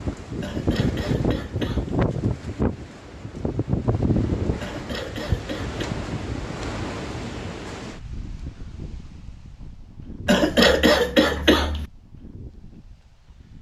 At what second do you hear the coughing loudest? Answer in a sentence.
The volume of the coughing peaks at 11 seconds.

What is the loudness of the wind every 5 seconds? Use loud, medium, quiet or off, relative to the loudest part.
loud, medium, quiet.